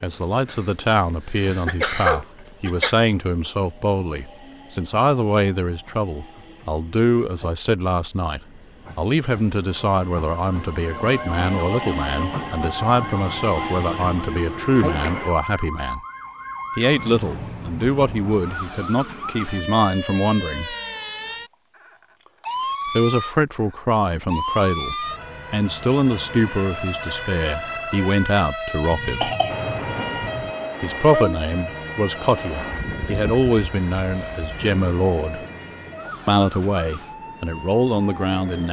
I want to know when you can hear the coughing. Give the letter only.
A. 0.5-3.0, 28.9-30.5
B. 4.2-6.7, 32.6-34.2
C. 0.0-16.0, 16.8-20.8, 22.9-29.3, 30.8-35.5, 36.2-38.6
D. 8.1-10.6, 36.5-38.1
A.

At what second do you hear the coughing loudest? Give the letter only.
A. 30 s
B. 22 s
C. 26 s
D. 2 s
D.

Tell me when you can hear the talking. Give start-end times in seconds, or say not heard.
0.0-16.0, 16.8-20.8, 22.9-29.3, 30.8-35.5, 36.2-38.6.